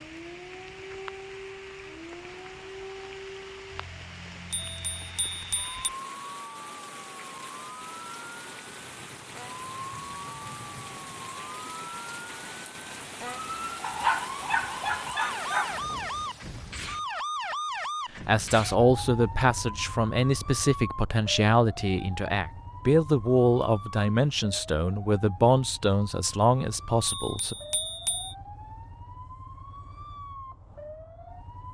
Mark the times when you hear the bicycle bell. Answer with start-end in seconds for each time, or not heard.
4.5-5.8, 27.1-28.4.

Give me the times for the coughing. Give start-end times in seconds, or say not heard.
not heard.